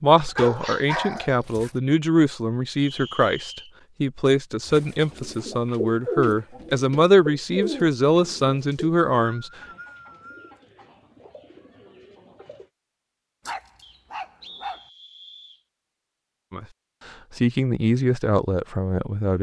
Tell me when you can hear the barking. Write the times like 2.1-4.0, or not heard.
0.1-1.8, 13.4-14.8.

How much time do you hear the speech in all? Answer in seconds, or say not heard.
12 s.